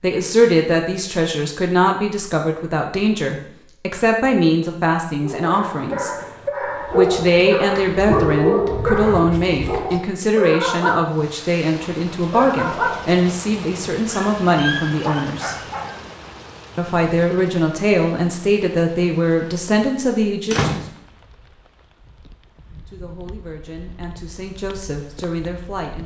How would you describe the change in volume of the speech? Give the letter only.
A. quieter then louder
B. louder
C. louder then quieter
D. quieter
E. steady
D.